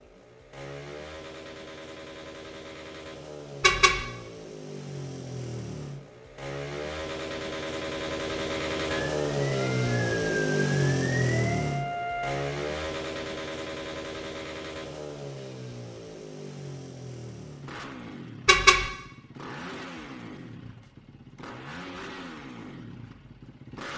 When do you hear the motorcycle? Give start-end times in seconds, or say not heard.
0.0-23.9.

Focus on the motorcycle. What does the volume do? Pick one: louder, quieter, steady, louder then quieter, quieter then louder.
louder then quieter.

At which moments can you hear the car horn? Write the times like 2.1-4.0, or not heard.
3.6-4.0, 18.4-18.9.